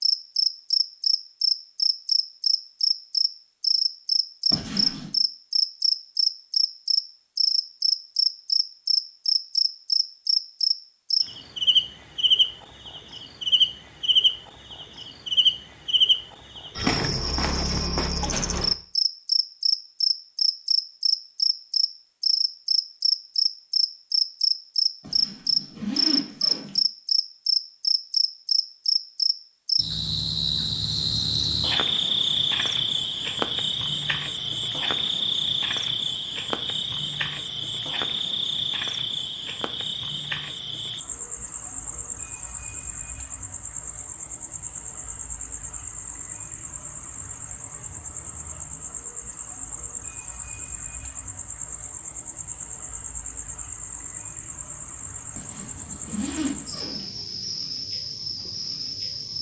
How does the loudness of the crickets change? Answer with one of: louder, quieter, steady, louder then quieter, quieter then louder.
quieter.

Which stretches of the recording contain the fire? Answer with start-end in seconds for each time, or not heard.
not heard.